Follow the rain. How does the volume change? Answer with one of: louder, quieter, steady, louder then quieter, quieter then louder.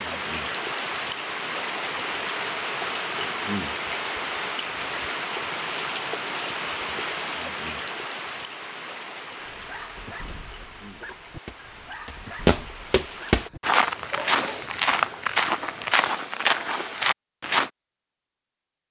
quieter.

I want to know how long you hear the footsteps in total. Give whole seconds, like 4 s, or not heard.
7 s.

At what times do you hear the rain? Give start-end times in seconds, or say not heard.
0.0-13.5.